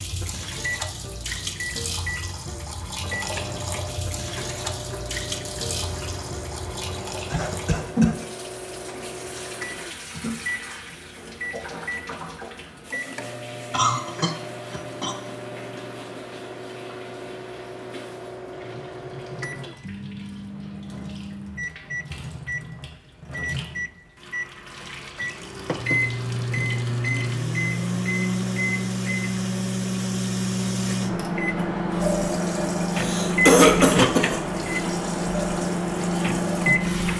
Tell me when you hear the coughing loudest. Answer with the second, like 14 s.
34 s.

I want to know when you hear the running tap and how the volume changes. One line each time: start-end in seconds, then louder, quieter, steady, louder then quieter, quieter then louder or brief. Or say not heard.
0.0-37.1 quieter then louder.